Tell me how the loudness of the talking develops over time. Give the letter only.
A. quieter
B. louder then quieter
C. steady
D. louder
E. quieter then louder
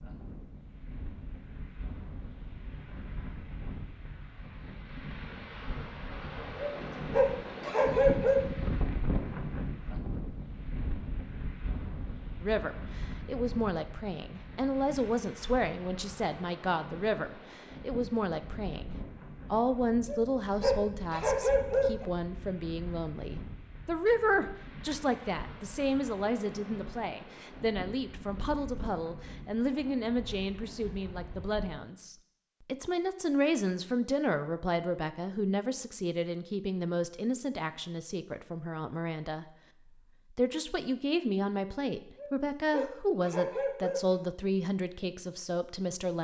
C.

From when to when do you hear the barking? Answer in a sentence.
You can hear the barking from 6.6 to 8.4 s, from 20.1 to 22.1 s and from 42.1 to 44.1 s.